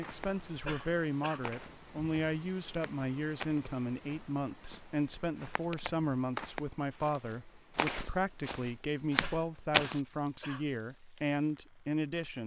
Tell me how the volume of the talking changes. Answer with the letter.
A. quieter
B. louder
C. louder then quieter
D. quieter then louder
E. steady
E.